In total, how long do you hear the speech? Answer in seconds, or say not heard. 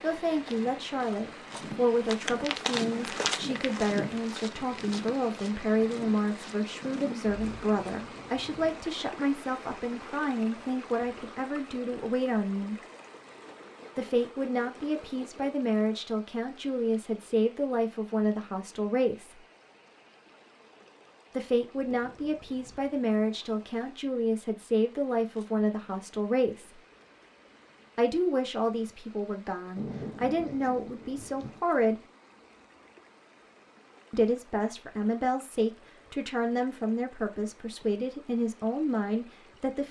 33 s.